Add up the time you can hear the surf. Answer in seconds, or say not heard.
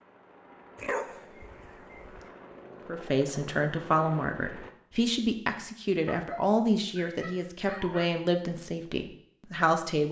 not heard.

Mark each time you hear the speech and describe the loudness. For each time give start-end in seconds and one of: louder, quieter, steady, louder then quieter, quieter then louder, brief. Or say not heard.
2.9-10.0 quieter.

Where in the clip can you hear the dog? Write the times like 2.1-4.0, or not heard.
0.8-2.3, 6.1-8.1.